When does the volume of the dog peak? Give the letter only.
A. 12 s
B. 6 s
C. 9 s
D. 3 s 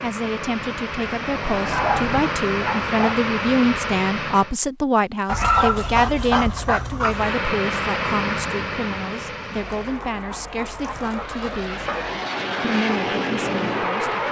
B.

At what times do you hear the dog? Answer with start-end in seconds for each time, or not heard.
1.6-3.1, 5.2-7.3, 9.6-12.2.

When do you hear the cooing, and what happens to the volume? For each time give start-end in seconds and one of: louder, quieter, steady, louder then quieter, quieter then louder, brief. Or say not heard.
not heard.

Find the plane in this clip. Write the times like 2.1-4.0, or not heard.
0.0-4.5, 7.0-14.2.